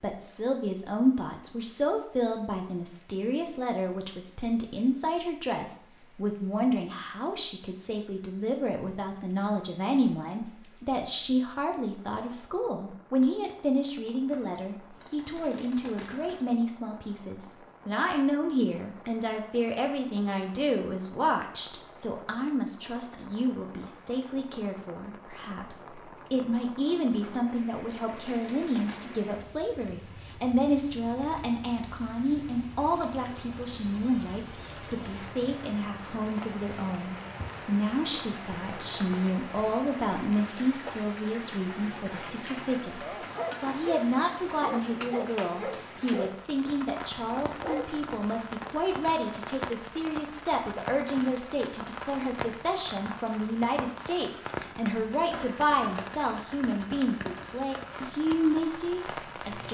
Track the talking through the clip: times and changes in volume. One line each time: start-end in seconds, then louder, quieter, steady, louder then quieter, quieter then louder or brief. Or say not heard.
0.0-59.6 steady.